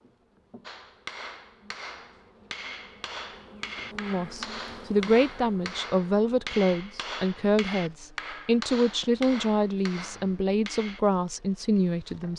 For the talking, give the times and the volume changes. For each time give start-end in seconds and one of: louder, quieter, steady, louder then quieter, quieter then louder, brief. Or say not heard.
4.0-12.3 steady.